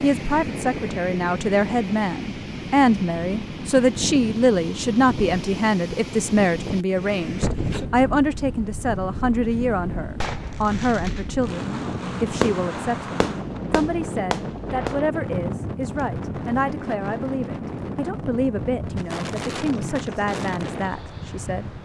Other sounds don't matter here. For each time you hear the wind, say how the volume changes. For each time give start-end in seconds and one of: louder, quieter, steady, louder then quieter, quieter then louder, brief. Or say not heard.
0.0-21.7 steady.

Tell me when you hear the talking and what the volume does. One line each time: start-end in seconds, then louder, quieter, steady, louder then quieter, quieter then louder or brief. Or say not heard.
0.0-21.7 quieter.